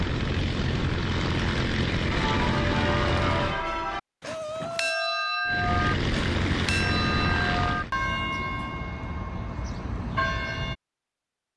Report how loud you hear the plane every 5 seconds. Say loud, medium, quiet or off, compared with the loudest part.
loud, loud, off.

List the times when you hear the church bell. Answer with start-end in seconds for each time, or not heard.
2.1-10.8.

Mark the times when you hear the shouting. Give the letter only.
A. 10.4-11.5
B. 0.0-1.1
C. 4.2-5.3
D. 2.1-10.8
C.